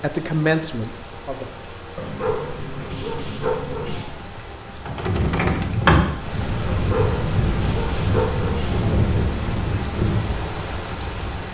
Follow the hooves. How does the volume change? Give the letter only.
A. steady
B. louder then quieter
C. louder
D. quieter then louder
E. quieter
E.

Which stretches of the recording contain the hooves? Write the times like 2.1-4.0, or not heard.
4.8-10.3.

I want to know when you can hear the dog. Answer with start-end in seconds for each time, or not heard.
1.9-4.2, 6.7-8.9.